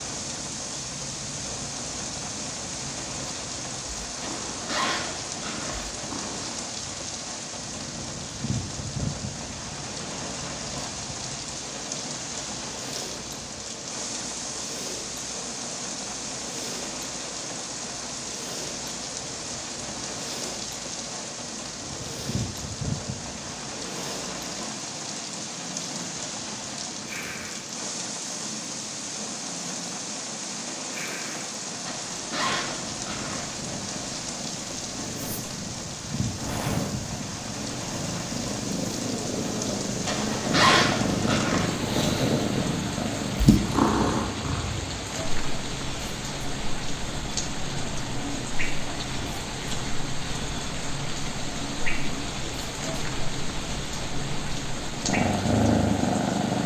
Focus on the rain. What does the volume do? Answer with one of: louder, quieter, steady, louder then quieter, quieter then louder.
steady.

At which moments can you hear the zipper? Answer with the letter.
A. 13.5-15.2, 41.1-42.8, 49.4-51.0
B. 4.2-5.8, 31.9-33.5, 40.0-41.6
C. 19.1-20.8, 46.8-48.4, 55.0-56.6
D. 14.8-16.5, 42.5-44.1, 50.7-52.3
B.